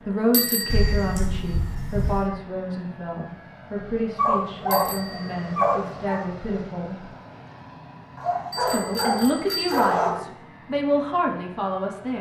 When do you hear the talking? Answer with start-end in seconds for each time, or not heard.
0.1-7.1, 8.6-12.1.